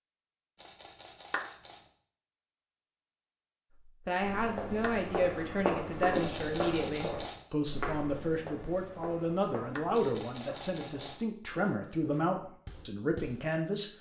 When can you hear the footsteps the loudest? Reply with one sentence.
The volume of the footsteps peaks at 6 seconds.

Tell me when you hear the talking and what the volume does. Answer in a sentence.
The talking can be heard from 3.9 to 13.9 s, at a steady volume.